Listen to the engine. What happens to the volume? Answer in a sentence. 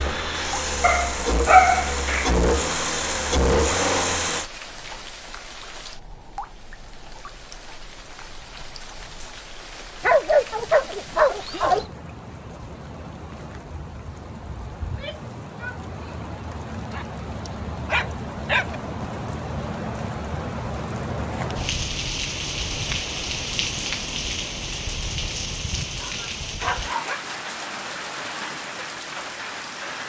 The loudness of the engine goes up.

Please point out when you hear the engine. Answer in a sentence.
The engine can be heard from 0.0 to 4.5 s.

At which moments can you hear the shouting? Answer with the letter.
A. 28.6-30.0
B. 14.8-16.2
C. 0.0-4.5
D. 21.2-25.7
B.